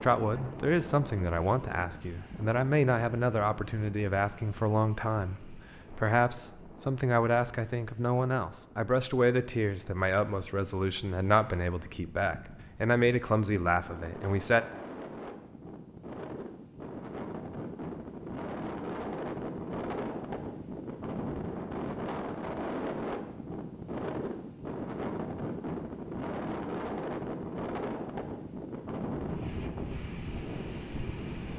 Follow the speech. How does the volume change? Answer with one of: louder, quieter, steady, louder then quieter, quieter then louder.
steady.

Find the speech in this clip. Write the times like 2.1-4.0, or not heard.
0.0-14.7.